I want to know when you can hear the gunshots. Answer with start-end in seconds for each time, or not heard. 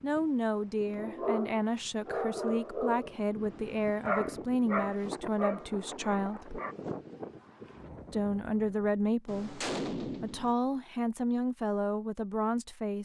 9.2-10.6.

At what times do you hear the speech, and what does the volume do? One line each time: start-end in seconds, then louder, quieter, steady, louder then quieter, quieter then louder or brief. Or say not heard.
0.0-6.6 steady
8.1-12.9 quieter then louder.